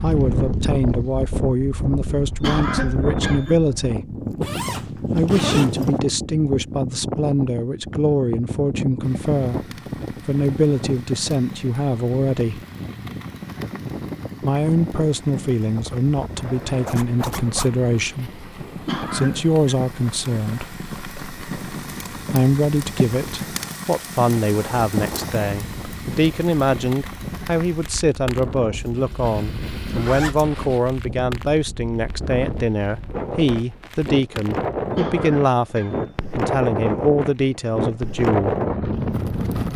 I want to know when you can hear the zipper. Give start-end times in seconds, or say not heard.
4.4-6.0, 16.9-17.8, 28.8-30.5.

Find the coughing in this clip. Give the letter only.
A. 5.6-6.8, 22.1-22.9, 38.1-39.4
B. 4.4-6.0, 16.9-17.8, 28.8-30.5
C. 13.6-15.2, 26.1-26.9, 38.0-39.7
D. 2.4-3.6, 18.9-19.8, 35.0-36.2
D.